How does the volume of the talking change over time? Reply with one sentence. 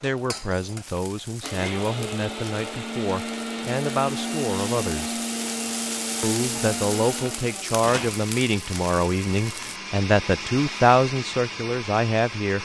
The volume of the talking goes up.